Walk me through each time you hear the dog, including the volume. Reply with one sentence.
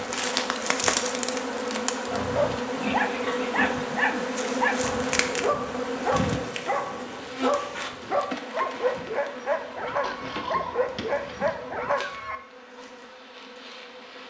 The dog can be heard from 2.1 to 12.3 s, at a steady volume.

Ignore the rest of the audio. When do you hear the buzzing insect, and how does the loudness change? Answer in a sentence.
The buzzing insect can be heard from 0.0 to 14.2 s, getting quieter.